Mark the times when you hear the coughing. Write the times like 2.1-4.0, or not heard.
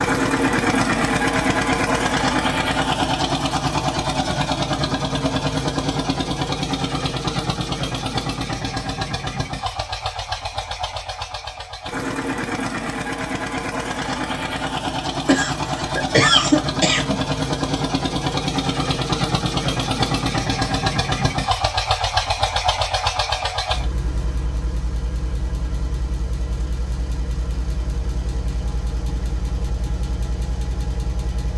15.2-17.1.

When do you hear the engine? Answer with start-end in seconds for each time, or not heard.
0.0-31.5.